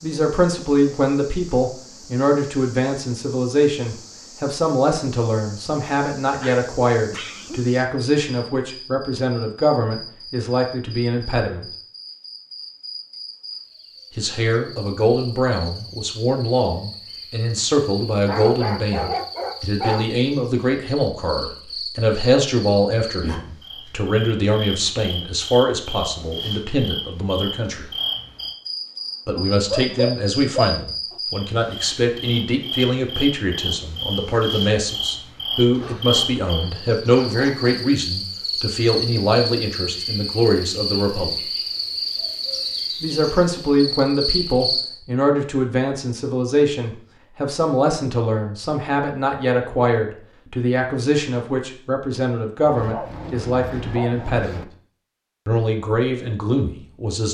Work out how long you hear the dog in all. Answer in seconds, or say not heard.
8 s.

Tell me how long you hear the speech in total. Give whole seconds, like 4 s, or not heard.
51 s.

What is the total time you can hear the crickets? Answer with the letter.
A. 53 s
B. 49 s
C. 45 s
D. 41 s
C.